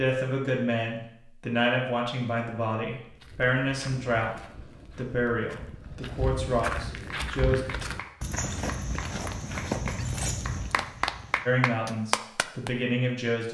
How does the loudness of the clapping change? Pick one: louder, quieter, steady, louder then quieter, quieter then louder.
louder.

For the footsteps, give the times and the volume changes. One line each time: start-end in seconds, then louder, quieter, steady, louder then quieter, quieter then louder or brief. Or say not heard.
3.0-11.7 louder.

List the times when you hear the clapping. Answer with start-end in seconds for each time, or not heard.
7.2-12.7.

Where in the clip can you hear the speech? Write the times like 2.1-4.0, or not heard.
0.0-7.6, 11.4-13.4.